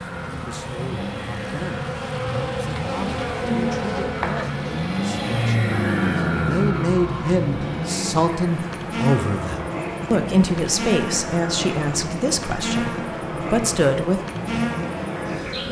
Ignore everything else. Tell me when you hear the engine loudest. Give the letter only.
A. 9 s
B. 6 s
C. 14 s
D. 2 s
B.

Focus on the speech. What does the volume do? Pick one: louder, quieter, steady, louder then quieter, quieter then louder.
louder.